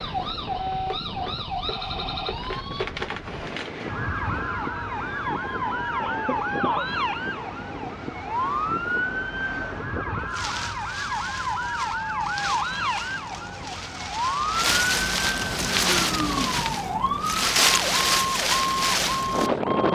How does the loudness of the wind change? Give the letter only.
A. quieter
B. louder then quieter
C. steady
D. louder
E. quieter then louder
D.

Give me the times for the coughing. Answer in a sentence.
You can hear the coughing from 6.0 to 6.9 s.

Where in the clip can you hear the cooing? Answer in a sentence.
You can't hear the cooing here.